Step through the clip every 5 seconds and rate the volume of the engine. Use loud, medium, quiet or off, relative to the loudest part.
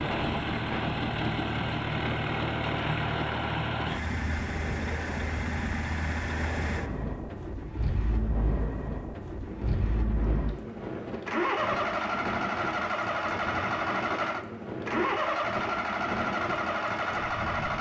loud, medium, loud, loud.